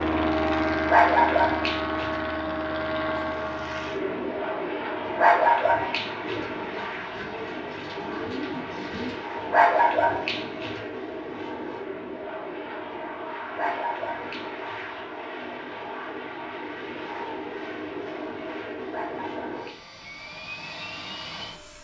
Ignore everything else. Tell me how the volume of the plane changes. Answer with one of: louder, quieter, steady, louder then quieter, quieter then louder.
quieter.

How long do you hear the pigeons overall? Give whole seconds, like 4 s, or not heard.
3 s.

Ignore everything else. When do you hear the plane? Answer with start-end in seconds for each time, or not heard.
0.0-21.7.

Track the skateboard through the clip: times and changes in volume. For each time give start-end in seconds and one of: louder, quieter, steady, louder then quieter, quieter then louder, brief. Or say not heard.
not heard.